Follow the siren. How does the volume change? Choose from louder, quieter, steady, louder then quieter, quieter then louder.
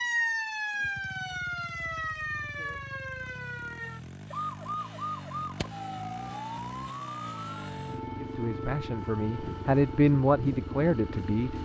quieter.